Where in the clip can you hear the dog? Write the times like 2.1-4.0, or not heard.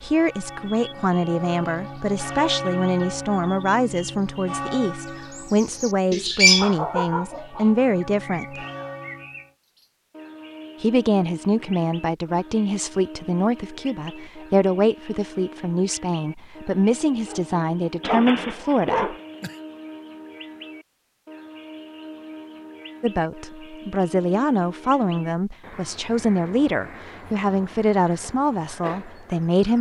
16.9-19.6.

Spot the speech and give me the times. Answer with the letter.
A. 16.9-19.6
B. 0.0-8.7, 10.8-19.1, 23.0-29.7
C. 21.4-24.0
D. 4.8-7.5
B.